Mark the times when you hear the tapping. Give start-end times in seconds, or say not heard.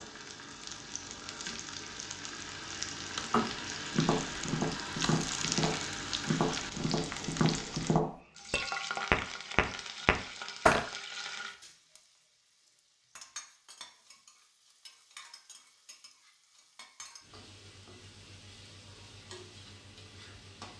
3.3-10.8.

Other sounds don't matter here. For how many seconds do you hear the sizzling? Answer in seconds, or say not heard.
21 s.